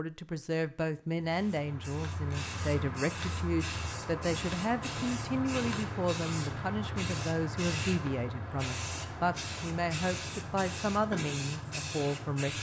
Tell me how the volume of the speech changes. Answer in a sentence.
The volume of the speech stays about the same.